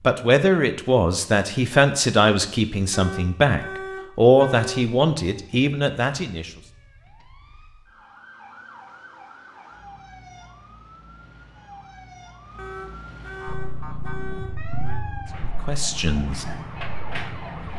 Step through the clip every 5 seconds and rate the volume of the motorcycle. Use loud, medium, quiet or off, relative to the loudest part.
off, off, loud, medium.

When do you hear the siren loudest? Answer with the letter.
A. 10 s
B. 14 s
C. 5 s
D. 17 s
D.